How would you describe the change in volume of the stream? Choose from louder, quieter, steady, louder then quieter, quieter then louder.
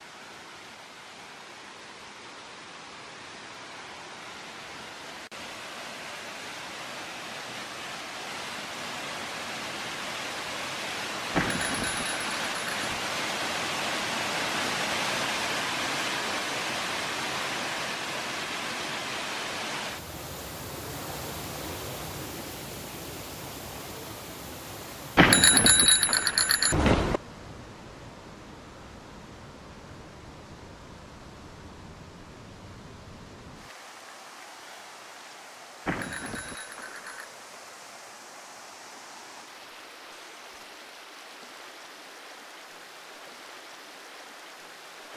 louder then quieter.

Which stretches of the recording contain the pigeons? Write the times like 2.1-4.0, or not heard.
not heard.